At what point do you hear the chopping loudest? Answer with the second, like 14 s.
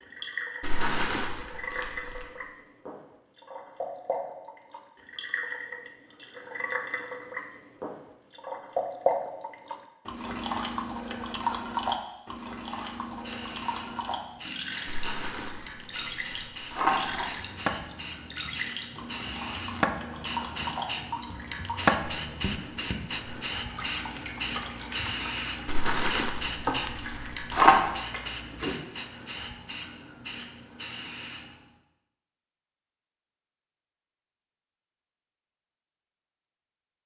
22 s.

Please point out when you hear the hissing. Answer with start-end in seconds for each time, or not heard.
12.7-31.7.